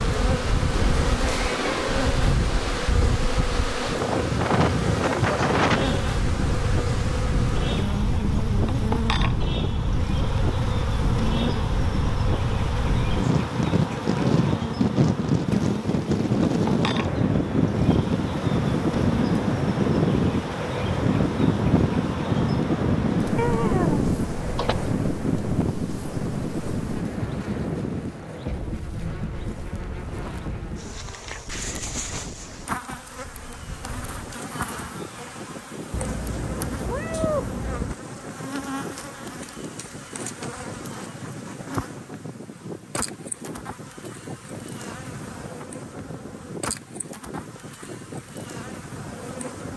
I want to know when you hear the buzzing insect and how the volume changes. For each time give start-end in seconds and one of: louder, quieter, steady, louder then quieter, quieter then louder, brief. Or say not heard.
0.0-49.7 quieter.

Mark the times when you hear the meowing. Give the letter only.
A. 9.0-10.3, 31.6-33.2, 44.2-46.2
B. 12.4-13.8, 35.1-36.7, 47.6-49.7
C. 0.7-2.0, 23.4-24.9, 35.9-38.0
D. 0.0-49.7
C.